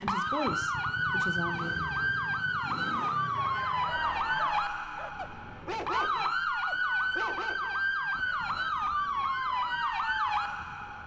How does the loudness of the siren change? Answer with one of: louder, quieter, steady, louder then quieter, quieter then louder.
steady.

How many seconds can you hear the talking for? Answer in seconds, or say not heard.
2 s.